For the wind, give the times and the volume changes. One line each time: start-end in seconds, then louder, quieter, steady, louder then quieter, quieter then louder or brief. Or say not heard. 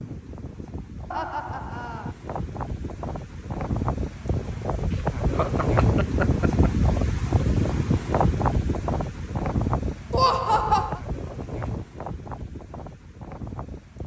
0.0-14.0 louder then quieter.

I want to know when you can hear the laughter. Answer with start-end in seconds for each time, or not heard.
1.1-2.1, 4.9-6.7, 10.1-11.0.